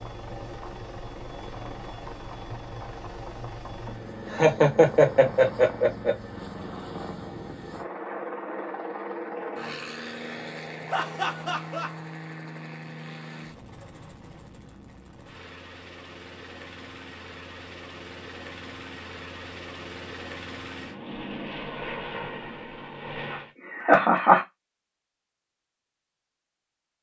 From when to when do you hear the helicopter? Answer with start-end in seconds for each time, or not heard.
0.0-23.6.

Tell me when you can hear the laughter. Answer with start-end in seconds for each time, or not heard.
3.9-6.2, 10.9-11.9, 23.3-24.4.